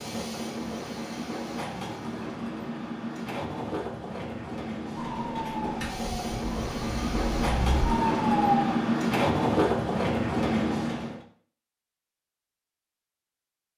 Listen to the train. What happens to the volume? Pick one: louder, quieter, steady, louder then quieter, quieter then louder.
louder.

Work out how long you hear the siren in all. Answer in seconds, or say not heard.
4 s.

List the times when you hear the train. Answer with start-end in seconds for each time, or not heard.
0.0-11.2.